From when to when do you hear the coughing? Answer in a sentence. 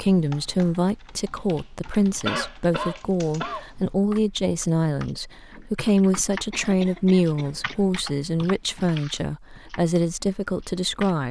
You can hear the coughing from 2.2 to 3.6 s and from 6.5 to 7.8 s.